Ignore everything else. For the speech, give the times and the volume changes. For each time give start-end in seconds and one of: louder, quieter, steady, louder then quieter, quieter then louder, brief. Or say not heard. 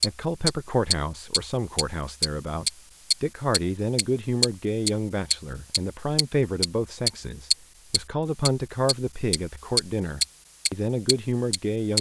0.0-11.9 steady.